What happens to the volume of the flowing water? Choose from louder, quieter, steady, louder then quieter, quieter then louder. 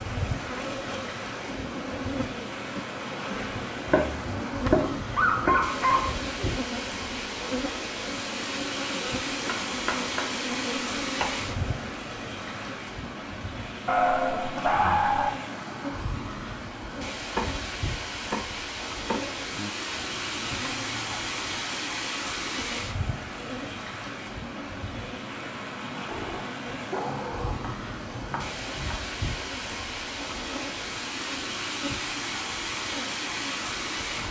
steady.